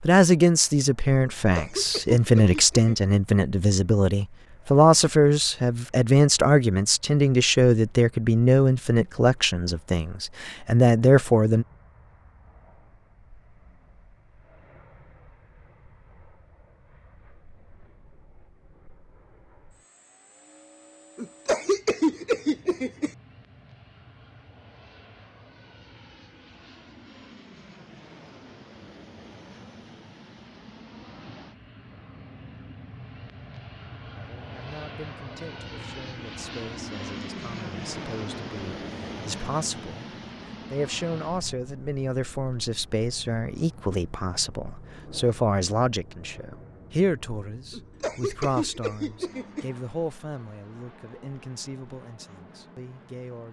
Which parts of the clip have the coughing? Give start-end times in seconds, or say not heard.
1.2-3.1, 21.1-23.1, 47.7-49.6.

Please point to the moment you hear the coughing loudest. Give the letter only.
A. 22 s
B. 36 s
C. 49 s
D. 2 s
A.